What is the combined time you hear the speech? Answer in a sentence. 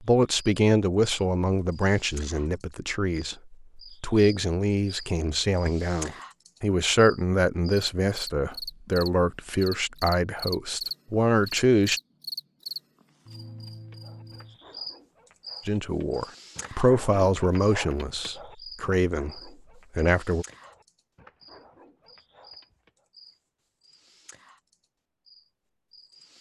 The speech can be heard for 17 seconds in total.